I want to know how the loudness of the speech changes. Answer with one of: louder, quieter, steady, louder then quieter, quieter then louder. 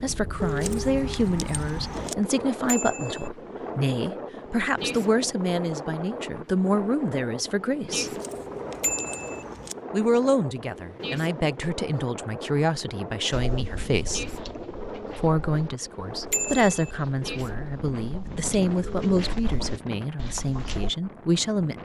steady.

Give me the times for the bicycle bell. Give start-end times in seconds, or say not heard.
2.6-3.3, 8.8-9.4, 16.3-16.9.